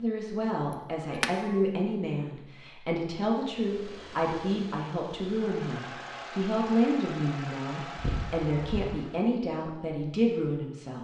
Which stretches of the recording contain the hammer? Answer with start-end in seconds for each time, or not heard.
not heard.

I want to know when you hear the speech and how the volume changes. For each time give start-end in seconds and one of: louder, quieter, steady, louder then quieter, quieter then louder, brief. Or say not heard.
0.0-10.9 steady.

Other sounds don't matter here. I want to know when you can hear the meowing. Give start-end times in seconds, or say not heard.
1.1-1.6, 8.0-8.9.